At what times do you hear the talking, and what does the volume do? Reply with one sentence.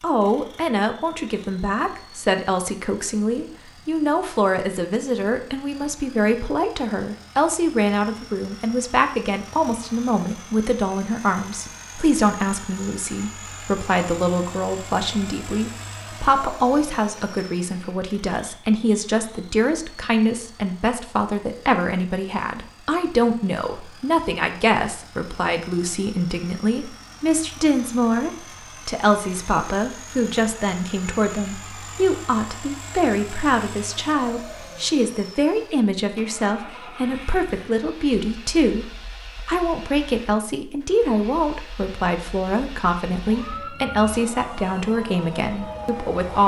The talking can be heard from 0.0 to 46.4 s, at a steady volume.